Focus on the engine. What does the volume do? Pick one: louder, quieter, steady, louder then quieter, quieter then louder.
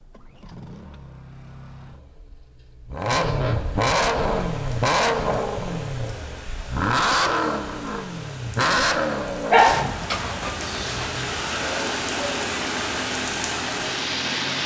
louder then quieter.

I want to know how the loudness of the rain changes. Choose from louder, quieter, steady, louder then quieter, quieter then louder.
louder.